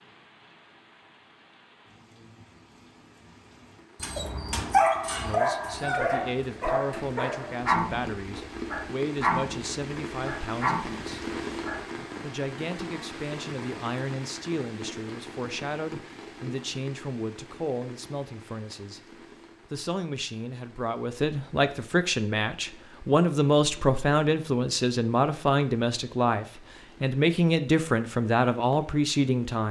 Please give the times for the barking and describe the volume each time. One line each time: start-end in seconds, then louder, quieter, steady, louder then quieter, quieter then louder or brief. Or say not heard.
4.0-12.1 quieter.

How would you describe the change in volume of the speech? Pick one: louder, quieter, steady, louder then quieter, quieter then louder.
louder.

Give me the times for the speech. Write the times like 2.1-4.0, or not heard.
5.2-11.2, 12.2-19.0, 19.7-29.6.